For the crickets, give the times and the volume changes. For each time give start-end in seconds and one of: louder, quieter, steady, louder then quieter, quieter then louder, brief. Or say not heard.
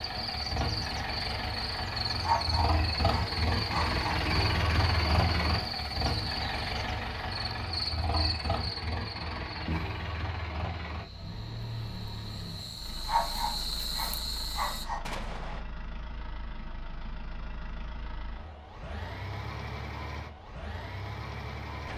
0.0-14.8 quieter then louder.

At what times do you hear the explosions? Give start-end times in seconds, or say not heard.
15.0-15.7.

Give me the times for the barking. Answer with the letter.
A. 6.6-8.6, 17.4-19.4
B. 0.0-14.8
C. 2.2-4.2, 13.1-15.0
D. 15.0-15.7
C.